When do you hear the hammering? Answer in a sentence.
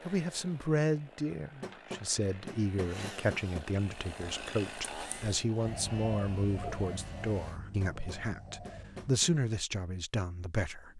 You can hear the hammering from 1.6 to 3.6 s and from 7.8 to 9.3 s.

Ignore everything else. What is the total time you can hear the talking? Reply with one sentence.
The talking can be heard for 11 seconds in total.